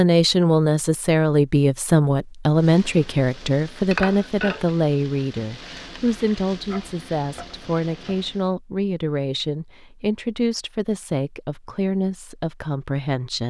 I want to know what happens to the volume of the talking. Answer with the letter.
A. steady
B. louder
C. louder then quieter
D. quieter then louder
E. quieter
E.